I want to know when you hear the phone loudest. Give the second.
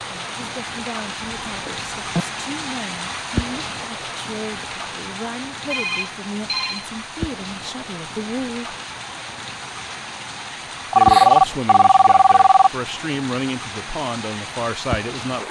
11 s.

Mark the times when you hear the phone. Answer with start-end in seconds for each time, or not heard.
1.4-2.2, 5.7-6.8, 10.9-12.7.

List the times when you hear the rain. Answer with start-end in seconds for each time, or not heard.
0.0-15.4.